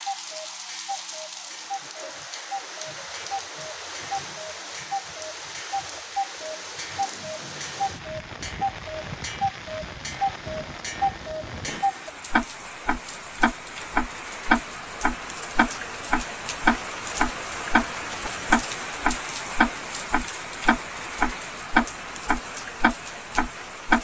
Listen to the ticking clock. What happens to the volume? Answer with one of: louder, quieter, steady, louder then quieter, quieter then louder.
louder.